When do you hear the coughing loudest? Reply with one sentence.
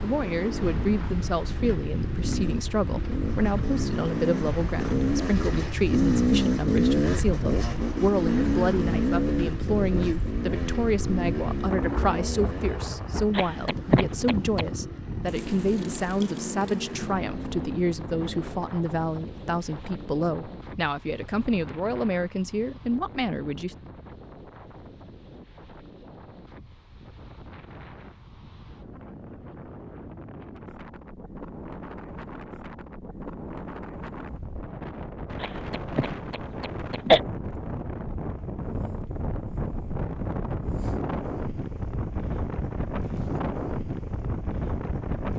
The volume of the coughing peaks at 37 seconds.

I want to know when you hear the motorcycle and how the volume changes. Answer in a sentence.
The motorcycle can be heard from 0.0 to 18.6 s, getting louder then quieter.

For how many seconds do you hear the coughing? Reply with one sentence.
You can hear the coughing for 3 seconds altogether.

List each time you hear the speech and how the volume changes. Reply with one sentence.
You can hear the speech from 0.0 to 23.8 s, at a steady volume.